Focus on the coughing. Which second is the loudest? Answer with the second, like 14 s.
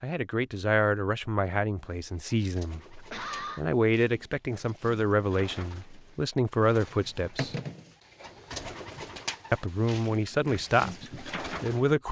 3 s.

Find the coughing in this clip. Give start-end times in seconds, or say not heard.
3.0-3.6, 8.5-9.2.